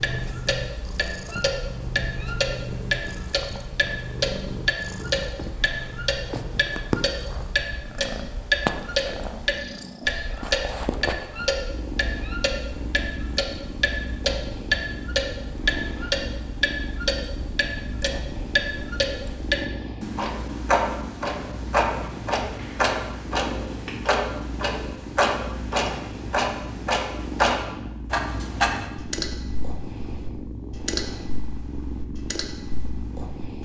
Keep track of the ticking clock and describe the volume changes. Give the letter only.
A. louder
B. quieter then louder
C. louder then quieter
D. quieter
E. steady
E.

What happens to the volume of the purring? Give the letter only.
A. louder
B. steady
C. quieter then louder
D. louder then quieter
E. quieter
B.